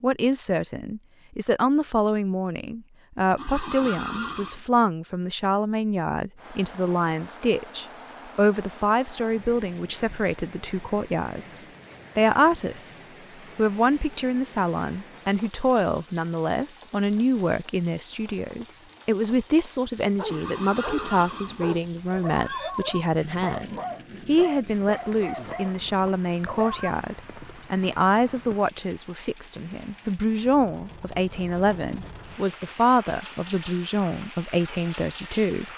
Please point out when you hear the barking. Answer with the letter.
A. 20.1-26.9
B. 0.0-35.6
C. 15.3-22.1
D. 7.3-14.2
A.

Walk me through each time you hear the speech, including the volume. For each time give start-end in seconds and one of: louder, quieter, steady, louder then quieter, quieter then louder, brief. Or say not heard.
0.0-35.6 steady.